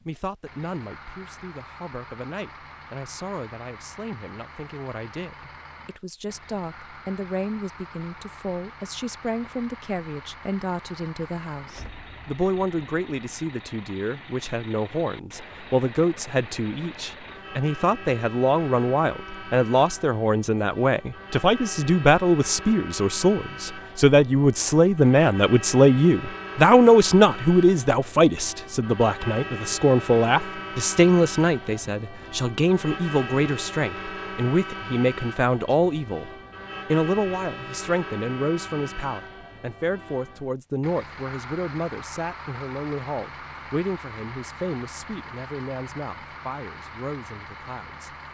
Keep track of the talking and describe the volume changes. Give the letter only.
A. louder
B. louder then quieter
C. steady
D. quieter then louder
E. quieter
B.